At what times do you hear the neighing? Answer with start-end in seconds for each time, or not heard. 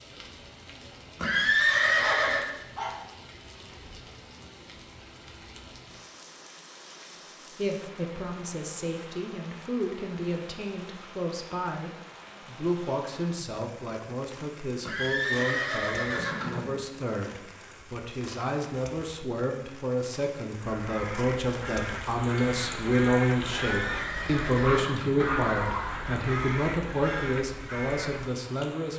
1.1-2.5, 14.8-16.7, 23.6-25.2.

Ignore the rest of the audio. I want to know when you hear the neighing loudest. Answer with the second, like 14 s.
2 s.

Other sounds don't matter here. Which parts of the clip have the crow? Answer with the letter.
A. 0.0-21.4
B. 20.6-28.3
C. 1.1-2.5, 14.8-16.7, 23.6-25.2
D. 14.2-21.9
B.